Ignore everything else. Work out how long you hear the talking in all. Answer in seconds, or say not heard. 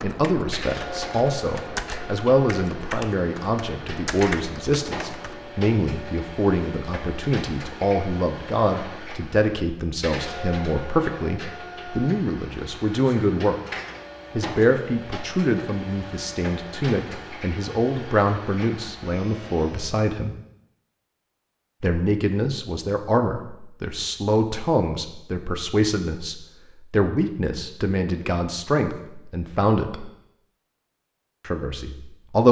29 s.